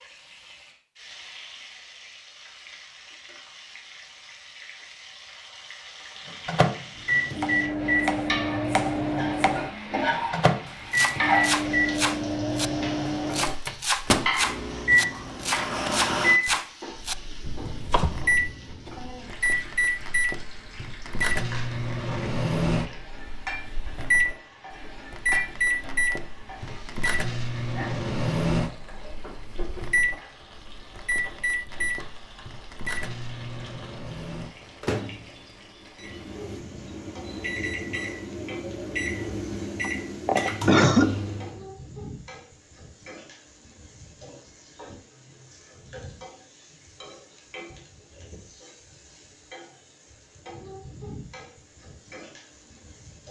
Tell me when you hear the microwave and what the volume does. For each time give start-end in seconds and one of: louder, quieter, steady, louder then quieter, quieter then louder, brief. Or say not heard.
6.2-41.6 quieter.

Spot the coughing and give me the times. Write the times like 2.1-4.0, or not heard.
39.8-41.1.